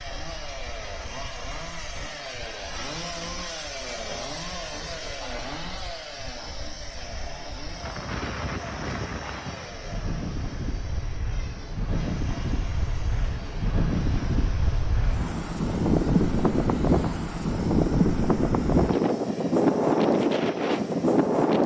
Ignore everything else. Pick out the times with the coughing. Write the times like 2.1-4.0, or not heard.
not heard.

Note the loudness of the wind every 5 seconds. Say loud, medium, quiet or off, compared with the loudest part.
quiet, quiet, medium, loud, loud.